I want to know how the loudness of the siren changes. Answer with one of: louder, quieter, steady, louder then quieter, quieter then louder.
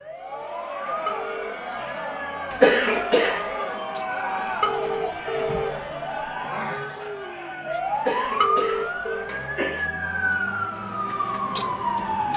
louder.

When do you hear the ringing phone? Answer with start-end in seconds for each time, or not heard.
0.9-1.5, 4.5-5.8, 8.2-9.3.